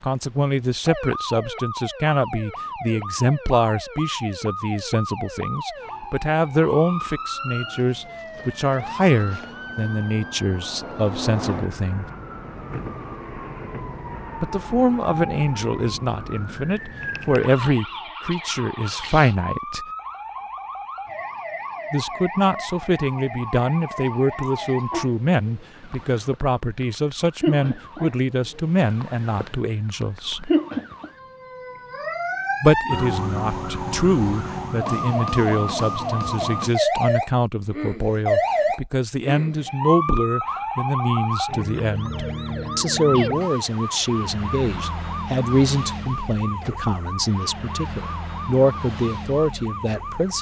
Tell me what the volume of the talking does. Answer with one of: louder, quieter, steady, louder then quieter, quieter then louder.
steady.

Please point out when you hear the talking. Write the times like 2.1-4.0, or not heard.
0.0-12.1, 14.4-19.9, 21.9-30.5, 32.6-50.3.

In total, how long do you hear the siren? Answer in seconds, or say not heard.
50 s.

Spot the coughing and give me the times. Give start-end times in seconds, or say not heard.
not heard.